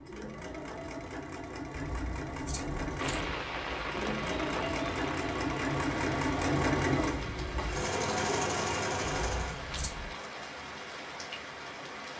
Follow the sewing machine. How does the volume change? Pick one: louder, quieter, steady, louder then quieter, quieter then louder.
louder.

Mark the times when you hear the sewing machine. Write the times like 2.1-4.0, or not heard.
0.0-9.6.